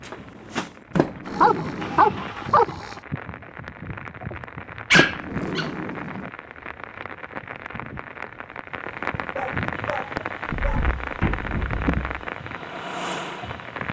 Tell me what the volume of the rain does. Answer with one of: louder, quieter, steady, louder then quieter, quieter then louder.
louder.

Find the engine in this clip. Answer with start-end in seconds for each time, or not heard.
0.0-2.5, 9.7-13.8.